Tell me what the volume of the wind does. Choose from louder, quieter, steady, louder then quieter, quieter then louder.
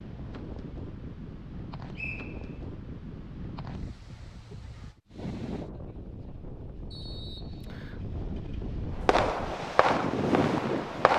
louder.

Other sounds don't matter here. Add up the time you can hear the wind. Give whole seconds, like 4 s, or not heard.
11 s.